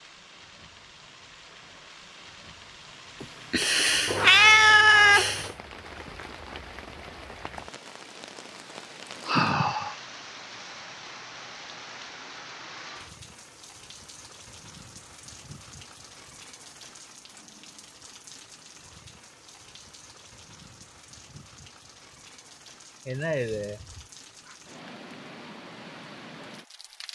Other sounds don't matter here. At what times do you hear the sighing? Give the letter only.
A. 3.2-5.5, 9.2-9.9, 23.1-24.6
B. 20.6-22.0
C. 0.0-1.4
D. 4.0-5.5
A.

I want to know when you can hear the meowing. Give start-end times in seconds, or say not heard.
4.0-5.5.